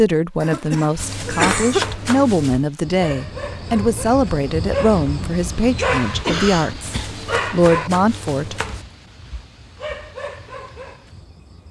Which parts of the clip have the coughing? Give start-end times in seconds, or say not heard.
0.4-1.9, 6.2-7.1.